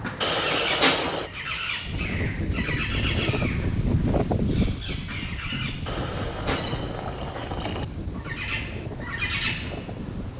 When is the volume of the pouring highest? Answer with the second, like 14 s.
1 s.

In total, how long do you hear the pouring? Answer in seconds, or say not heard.
3 s.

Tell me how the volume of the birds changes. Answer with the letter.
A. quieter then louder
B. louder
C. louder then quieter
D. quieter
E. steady
A.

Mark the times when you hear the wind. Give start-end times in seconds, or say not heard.
1.8-10.3.